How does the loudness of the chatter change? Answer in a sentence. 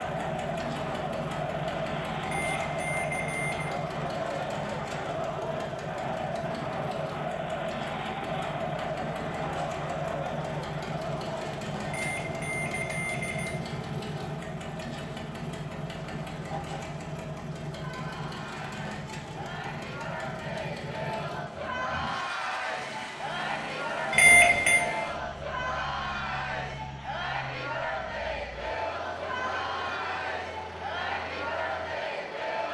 The loudness of the chatter goes down, then up.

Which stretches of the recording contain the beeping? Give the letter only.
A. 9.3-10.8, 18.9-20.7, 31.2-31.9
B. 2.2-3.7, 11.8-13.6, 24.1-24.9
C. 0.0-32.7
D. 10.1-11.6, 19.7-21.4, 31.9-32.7
B.